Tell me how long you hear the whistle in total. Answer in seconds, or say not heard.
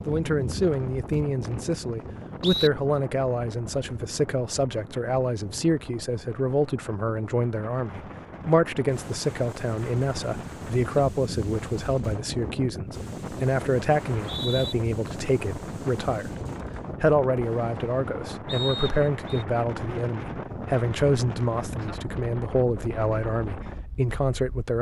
4 s.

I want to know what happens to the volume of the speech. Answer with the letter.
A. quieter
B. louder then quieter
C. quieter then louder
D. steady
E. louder
D.